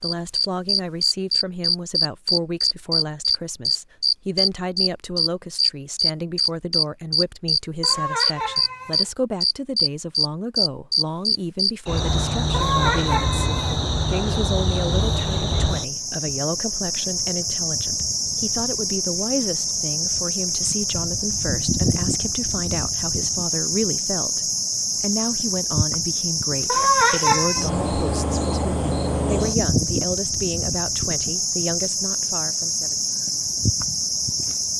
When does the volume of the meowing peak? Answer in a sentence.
The loudest moment of the meowing is at 27 seconds.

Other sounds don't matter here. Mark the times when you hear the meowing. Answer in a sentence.
You can hear the meowing from 7.8 to 9.1 s, from 12.5 to 13.8 s and from 26.6 to 27.6 s.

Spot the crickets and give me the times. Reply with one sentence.
The crickets can be heard from 0.0 to 34.7 s.